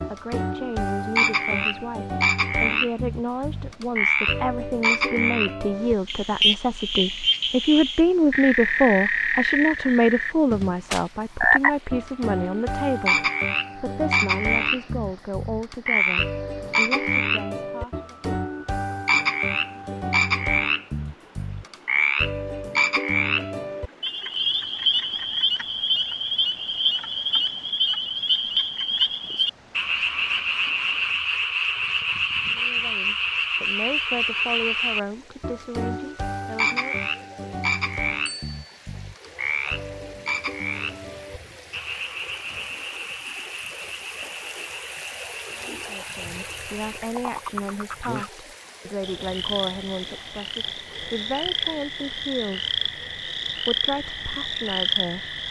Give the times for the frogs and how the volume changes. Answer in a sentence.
The frogs can be heard from 0.0 to 55.4 s, getting quieter.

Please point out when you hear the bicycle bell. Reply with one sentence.
You can hear the bicycle bell from 38.2 to 38.8 s.